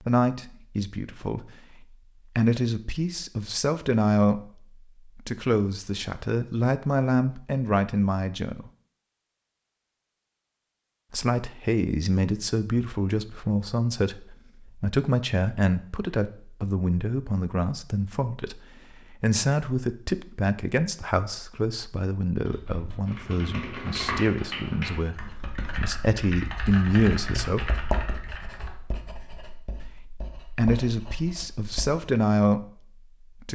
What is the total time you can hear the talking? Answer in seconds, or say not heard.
29 s.